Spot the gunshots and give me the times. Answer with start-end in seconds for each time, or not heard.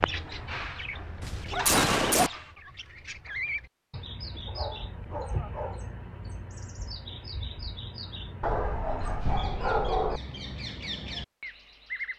1.2-2.3.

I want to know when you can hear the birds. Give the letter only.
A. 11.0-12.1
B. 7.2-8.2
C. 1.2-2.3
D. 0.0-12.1
D.